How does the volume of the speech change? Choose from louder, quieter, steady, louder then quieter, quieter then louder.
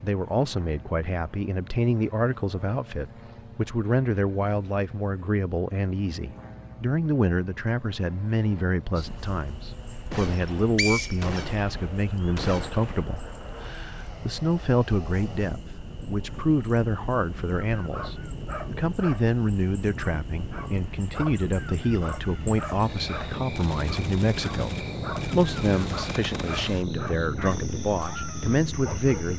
steady.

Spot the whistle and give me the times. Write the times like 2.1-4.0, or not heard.
10.2-11.4.